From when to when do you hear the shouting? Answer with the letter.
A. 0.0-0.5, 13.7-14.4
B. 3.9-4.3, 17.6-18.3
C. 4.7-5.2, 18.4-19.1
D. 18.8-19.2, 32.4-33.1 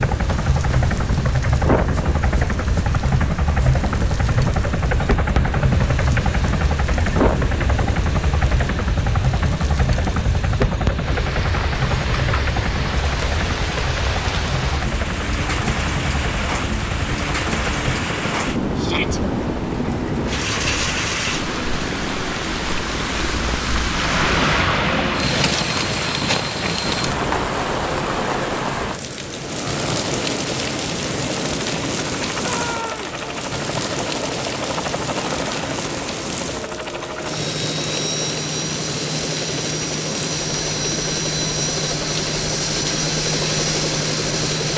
D.